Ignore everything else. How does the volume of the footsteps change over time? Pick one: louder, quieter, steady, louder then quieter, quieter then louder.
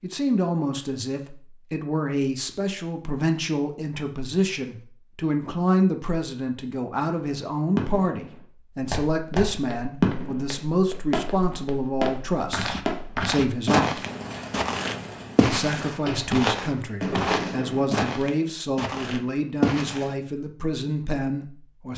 louder.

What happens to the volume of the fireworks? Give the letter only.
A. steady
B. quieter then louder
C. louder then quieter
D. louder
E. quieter
B.